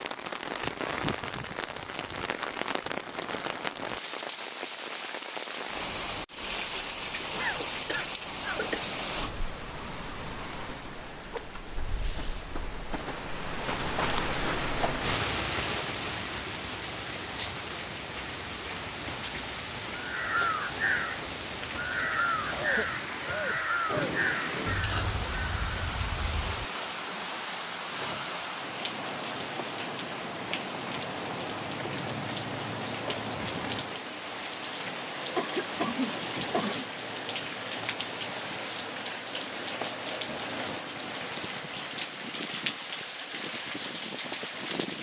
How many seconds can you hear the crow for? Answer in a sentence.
You can hear the crow for 7 seconds altogether.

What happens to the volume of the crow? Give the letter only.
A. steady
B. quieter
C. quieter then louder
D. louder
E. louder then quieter
B.